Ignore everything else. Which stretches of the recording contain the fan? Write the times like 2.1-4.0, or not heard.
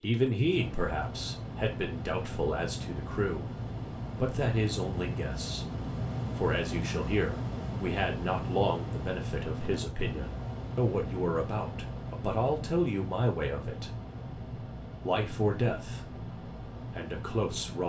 0.0-17.8.